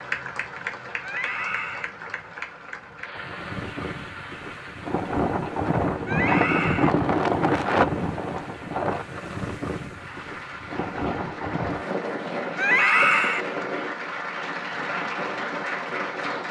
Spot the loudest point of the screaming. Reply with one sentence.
The volume of the screaming peaks at 13 seconds.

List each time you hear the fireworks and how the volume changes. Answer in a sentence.
The fireworks can't be heard in this clip.